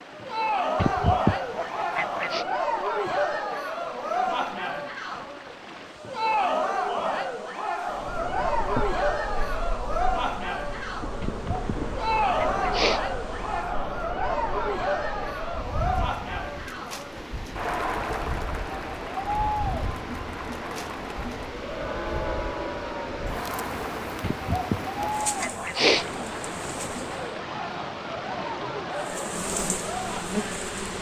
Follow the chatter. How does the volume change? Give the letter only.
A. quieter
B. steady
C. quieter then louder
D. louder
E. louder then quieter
A.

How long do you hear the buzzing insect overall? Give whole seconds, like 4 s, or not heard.
21 s.